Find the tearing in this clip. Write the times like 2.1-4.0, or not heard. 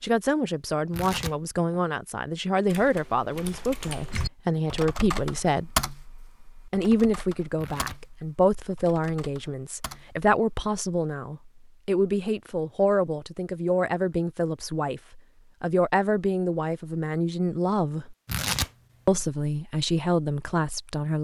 0.9-1.8, 7.5-8.0, 18.2-19.1.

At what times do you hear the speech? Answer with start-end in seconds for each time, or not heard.
0.0-5.8, 6.7-18.1, 19.1-21.1.